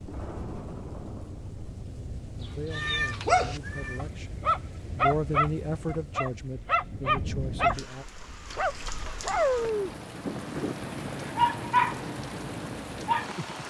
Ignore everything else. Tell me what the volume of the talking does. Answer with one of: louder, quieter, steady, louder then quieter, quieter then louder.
louder then quieter.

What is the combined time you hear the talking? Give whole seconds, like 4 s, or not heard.
6 s.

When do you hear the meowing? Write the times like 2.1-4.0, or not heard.
2.7-4.1.